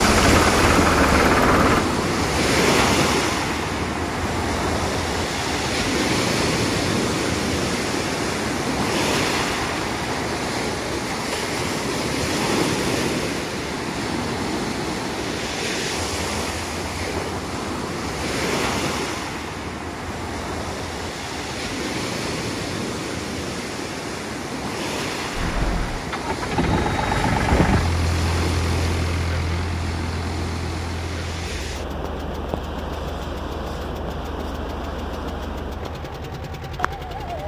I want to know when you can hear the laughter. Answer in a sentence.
You can't hear the laughter here.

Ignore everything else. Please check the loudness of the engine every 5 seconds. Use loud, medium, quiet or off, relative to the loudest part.
loud, off, off, off, off, medium, quiet, quiet.